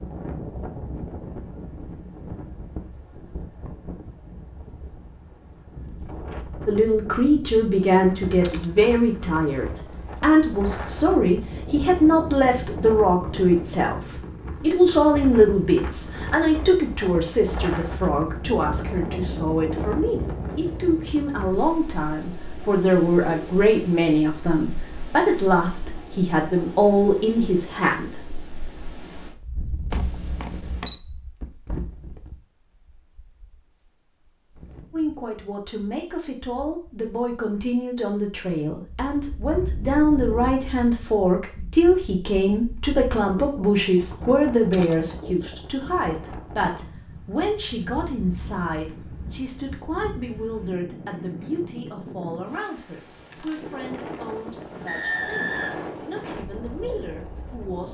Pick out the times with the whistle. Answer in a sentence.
The whistle can be heard from 54.9 to 56.0 s.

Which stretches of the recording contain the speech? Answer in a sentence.
You can hear the speech from 6.7 to 28.2 s and from 34.9 to 57.8 s.